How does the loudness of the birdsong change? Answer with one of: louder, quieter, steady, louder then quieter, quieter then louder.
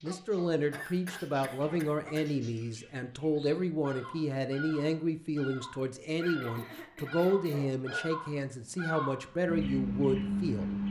louder.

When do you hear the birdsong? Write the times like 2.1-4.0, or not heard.
0.0-10.8.